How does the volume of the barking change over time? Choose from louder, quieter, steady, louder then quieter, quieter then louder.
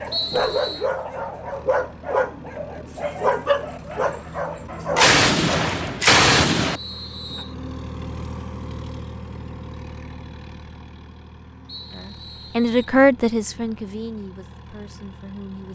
steady.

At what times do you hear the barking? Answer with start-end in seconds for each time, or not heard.
0.0-5.8.